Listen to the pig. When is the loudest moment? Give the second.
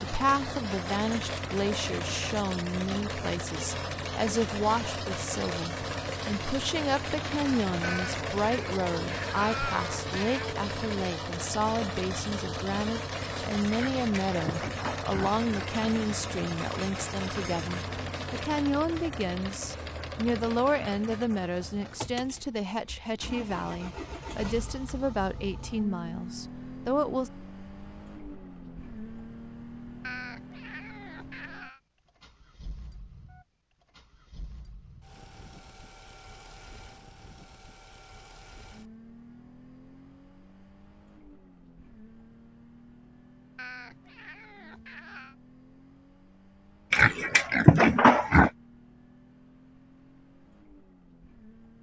48 s.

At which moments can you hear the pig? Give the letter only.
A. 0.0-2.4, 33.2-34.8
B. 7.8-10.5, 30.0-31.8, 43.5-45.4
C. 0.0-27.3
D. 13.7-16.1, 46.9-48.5
D.